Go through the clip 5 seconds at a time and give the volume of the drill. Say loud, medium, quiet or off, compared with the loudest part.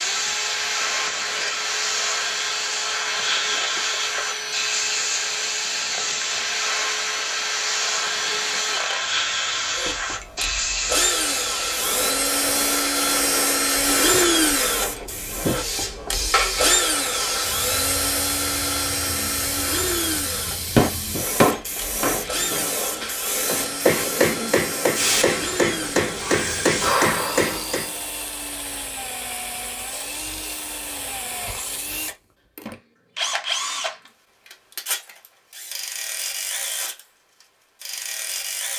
medium, medium, loud, loud, medium, medium, medium, medium.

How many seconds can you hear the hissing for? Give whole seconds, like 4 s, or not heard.
28 s.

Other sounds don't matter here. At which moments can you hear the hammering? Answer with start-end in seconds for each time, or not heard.
20.3-27.9.